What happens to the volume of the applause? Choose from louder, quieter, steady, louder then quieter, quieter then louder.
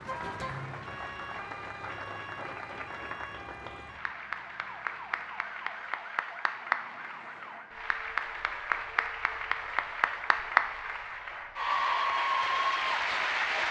louder.